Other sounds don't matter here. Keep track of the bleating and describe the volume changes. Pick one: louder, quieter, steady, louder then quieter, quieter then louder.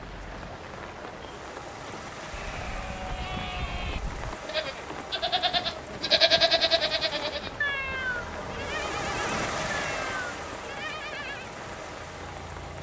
louder then quieter.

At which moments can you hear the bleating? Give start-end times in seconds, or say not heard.
2.3-11.6.